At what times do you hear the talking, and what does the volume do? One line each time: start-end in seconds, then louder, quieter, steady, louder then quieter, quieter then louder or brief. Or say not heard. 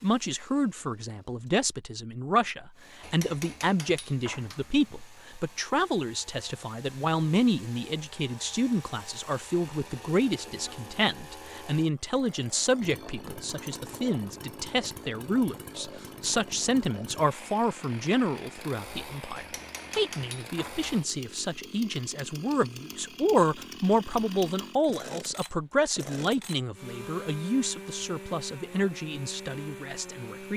0.0-30.5 steady.